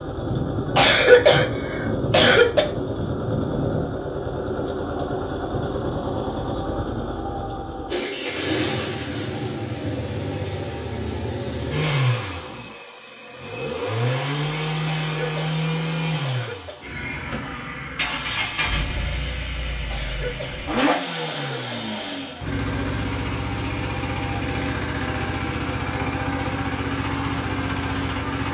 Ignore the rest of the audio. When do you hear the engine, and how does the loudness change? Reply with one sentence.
You can hear the engine from 0.0 to 28.4 s, at a steady volume.